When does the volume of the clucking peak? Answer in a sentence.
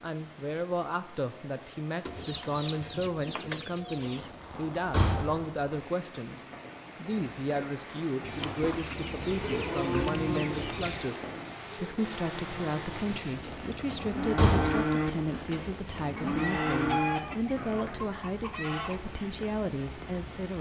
The volume of the clucking peaks at 17 seconds.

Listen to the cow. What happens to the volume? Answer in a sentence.
The loudness of the cow goes down, then up.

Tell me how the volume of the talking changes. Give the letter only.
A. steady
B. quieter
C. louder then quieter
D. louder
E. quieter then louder
A.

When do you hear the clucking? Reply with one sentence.
You can hear the clucking from 2.0 to 4.3 s, from 8.2 to 11.2 s and from 16.1 to 19.0 s.